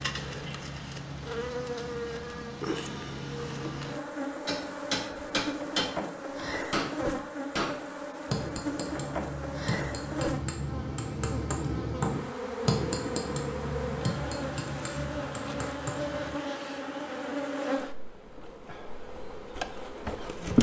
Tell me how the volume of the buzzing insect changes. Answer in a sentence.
The loudness of the buzzing insect stays about the same.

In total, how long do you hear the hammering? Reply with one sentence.
You can hear the hammering for 12 seconds altogether.